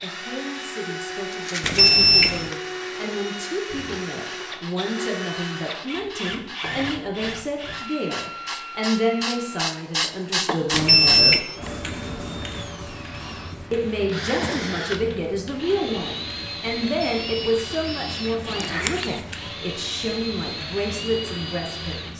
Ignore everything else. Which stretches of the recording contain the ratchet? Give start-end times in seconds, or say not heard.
not heard.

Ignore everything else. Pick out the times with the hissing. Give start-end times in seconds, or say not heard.
3.7-22.1.